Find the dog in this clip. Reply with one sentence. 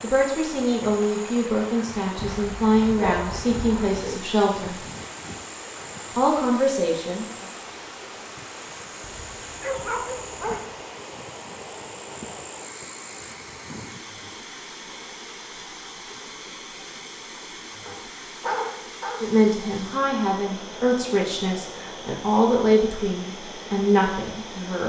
You can hear the dog from 2.1 to 4.2 s, from 9.1 to 10.7 s and from 17.9 to 19.3 s.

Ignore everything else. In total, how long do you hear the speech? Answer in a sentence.
The speech can be heard for 12 seconds in total.